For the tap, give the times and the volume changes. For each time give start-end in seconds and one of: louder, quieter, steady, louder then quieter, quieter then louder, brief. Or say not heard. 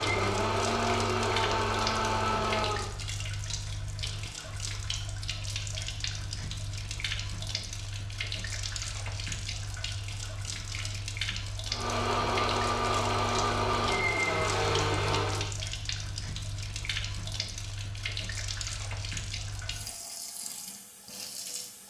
0.0-21.8 steady.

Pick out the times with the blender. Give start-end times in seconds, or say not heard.
0.0-2.9, 11.7-15.5.